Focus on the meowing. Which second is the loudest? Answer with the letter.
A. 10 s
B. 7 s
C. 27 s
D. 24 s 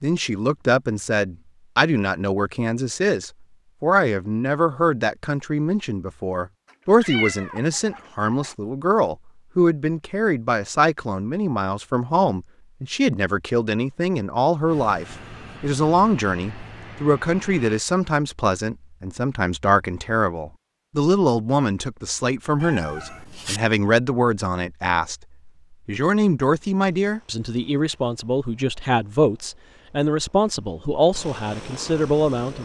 B.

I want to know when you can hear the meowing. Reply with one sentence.
You can hear the meowing from 7.0 to 8.6 s and from 22.6 to 23.6 s.